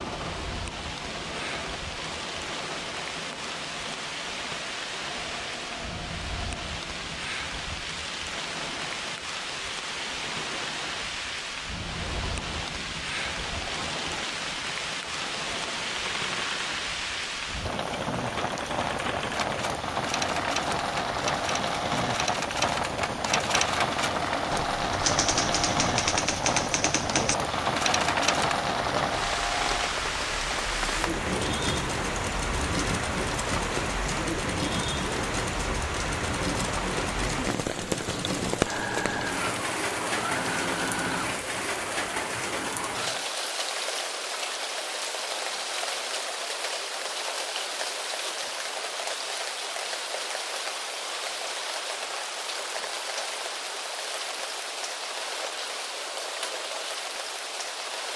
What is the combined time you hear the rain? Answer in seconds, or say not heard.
58 s.